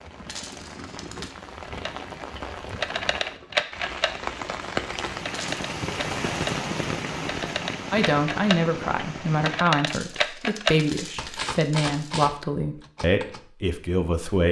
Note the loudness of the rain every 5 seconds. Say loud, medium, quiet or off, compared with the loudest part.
loud, loud, off.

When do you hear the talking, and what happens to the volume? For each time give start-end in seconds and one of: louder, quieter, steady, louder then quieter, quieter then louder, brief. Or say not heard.
7.9-14.4 steady.